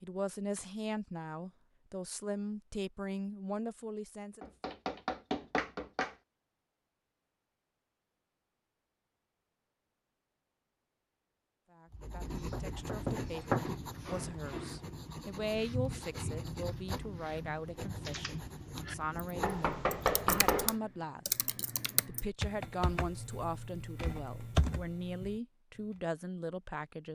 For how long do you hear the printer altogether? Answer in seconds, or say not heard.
not heard.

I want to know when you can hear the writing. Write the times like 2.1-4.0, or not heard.
11.9-20.4.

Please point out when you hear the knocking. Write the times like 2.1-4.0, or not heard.
4.4-6.2, 12.5-13.7, 19.4-20.8.